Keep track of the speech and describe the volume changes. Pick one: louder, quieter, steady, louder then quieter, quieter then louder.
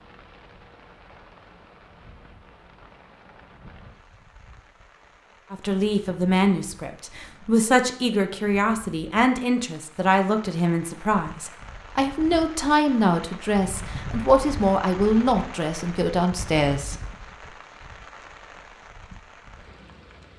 steady.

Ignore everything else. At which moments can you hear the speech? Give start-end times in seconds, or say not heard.
5.5-16.9.